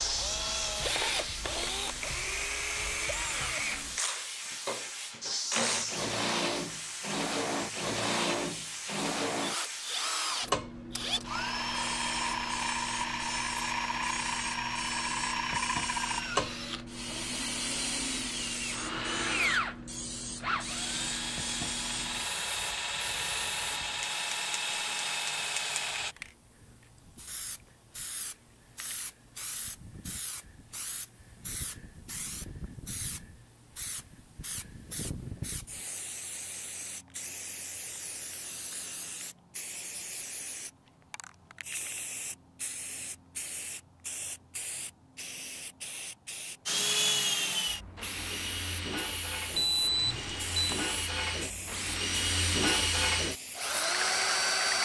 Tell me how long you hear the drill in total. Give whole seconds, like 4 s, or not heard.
34 s.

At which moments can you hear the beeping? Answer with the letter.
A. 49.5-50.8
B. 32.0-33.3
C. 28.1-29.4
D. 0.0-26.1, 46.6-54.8
A.